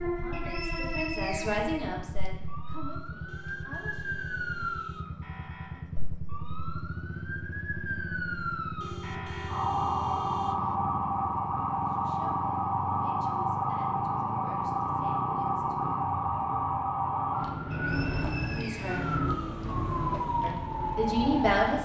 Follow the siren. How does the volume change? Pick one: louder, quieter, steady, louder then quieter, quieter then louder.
louder.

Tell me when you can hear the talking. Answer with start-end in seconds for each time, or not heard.
0.0-4.0, 11.8-15.9, 18.6-19.1, 20.4-21.8.